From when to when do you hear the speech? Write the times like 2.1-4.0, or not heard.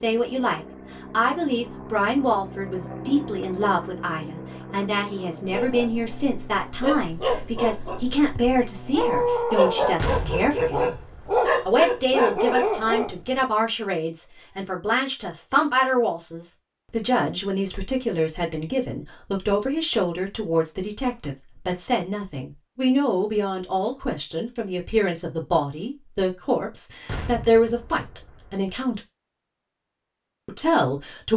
0.0-10.9, 11.7-29.0, 30.4-31.3.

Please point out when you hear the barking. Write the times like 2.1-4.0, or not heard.
5.5-13.4.